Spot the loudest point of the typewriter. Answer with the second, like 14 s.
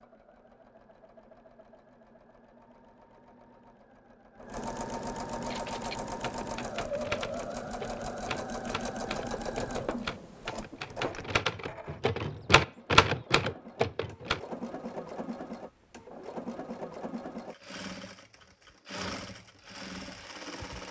13 s.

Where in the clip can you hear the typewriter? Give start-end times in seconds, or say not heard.
5.4-14.4.